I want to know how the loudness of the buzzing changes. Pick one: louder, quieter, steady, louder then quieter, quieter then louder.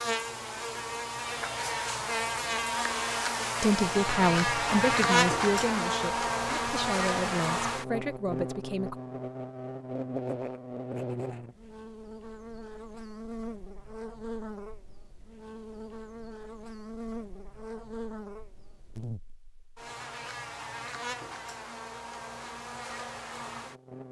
quieter.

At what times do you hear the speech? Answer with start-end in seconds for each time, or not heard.
3.6-9.0.